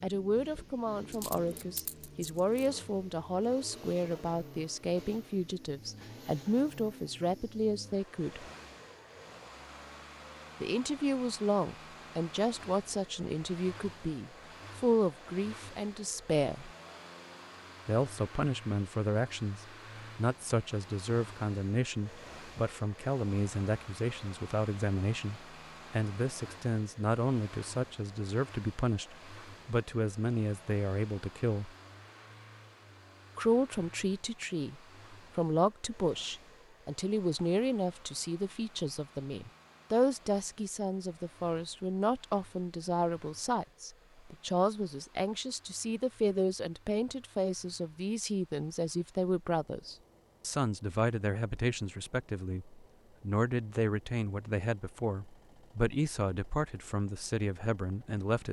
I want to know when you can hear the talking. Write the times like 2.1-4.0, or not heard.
0.0-8.4, 10.6-16.7, 17.9-31.7, 33.4-58.4.